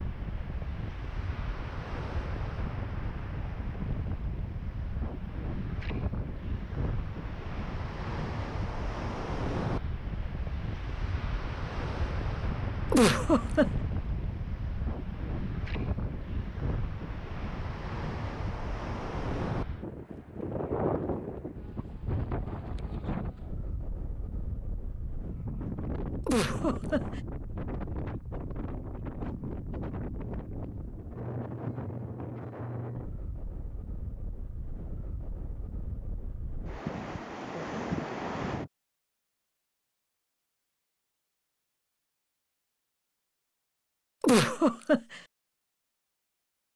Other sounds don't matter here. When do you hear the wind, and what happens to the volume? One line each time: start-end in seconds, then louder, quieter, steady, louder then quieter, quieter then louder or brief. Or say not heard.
0.0-38.7 steady.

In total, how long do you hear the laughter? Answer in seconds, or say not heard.
3 s.